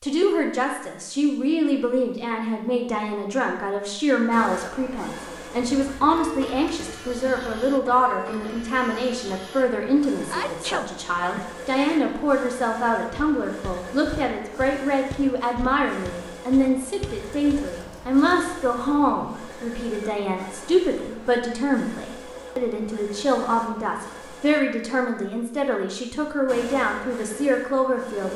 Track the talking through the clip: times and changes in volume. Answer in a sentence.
The talking can be heard from 0.0 to 28.3 s, at a steady volume.